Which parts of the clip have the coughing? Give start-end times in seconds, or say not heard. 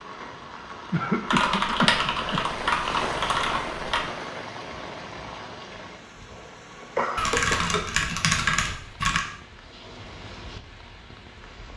0.9-2.5, 6.3-7.8.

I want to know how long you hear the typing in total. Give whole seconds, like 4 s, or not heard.
5 s.